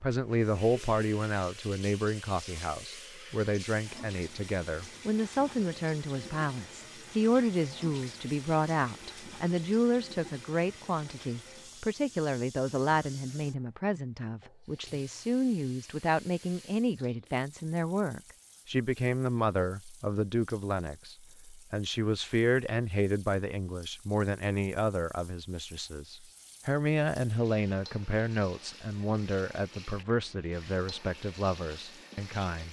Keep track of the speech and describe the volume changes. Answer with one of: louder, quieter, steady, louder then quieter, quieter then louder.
steady.